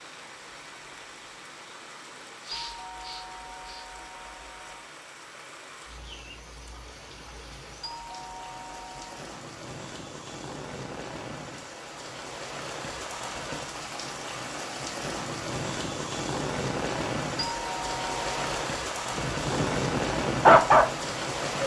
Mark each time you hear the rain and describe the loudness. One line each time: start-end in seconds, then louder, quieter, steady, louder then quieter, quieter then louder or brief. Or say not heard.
0.0-21.6 louder.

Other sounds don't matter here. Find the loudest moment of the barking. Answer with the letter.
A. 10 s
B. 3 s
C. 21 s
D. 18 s
C.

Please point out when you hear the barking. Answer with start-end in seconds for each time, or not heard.
19.1-21.6.